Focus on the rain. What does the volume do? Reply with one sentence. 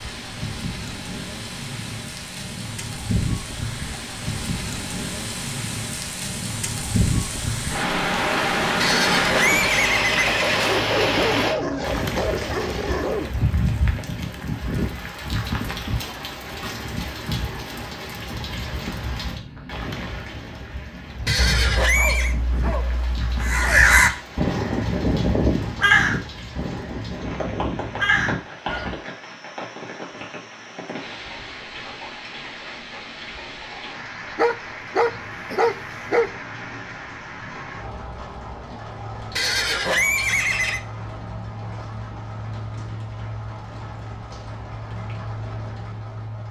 The loudness of the rain goes down.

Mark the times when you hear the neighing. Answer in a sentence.
You can hear the neighing from 8.8 to 10.8 s, from 21.2 to 22.4 s and from 39.4 to 40.8 s.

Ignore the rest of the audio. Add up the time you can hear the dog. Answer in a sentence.
You can hear the dog for 7 seconds altogether.